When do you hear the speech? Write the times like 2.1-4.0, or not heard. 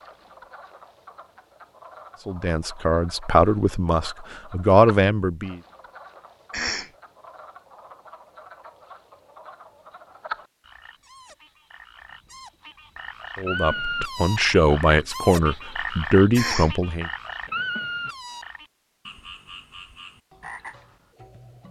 2.2-5.6, 13.3-17.1.